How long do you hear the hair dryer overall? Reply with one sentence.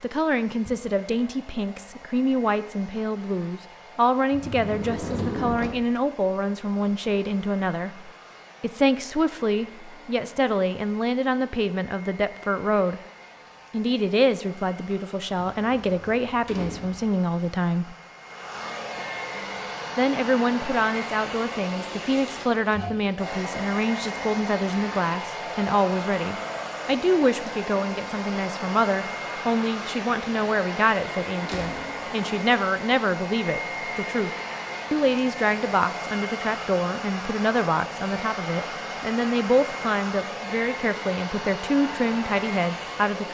You can hear the hair dryer for 43 seconds altogether.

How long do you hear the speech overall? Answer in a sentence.
The speech can be heard for 40 seconds in total.